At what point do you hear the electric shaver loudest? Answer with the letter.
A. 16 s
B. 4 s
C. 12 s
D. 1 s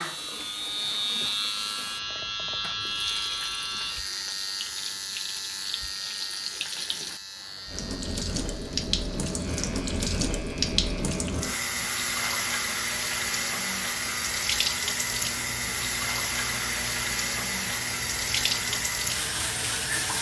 D.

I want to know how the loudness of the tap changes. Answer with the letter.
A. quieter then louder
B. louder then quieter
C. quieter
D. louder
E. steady
D.